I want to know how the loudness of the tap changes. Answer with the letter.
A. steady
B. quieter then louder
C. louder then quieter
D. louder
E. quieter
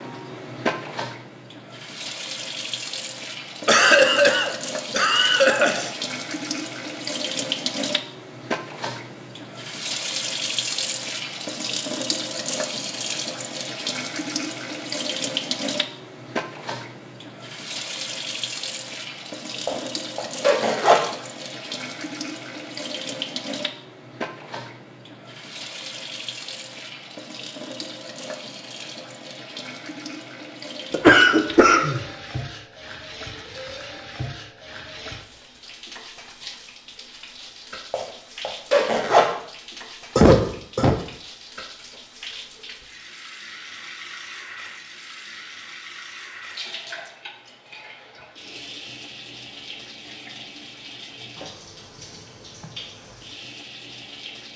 E.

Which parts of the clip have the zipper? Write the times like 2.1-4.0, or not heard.
19.6-21.1, 37.9-39.3.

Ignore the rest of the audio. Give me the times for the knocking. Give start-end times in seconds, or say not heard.
not heard.